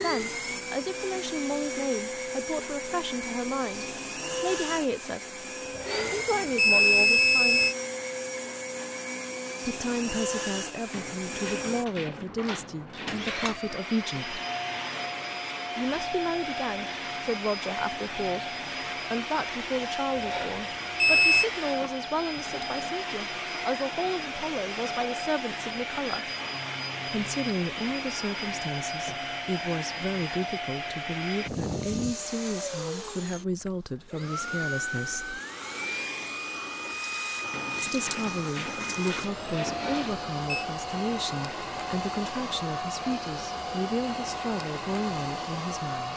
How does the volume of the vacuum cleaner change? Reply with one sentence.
The loudness of the vacuum cleaner stays about the same.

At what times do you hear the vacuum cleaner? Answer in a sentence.
The vacuum cleaner can be heard from 0.0 to 46.1 s.